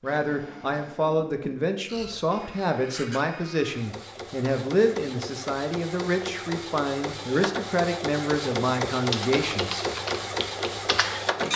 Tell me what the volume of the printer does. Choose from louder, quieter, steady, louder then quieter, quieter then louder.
louder.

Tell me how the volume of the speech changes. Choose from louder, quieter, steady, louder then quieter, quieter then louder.
steady.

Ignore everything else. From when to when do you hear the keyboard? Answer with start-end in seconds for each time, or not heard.
9.0-11.5.